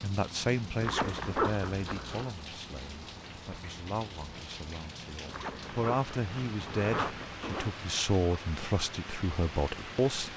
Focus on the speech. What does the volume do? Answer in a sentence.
The loudness of the speech goes down, then up.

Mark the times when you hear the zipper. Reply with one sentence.
The zipper can be heard from 0.8 to 2.3 s and from 5.2 to 7.7 s.